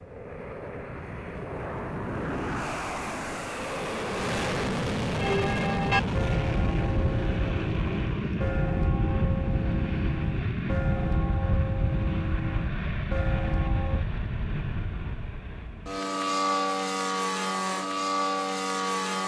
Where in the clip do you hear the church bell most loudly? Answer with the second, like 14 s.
6 s.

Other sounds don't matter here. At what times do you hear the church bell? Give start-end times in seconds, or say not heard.
5.2-14.1.